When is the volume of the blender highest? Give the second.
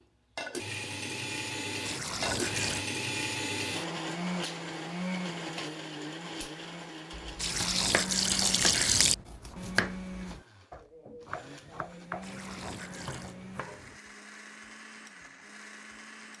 3 s.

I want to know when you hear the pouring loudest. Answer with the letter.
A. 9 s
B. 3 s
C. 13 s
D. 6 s
A.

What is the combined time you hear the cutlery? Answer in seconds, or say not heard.
not heard.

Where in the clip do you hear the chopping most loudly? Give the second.
10 s.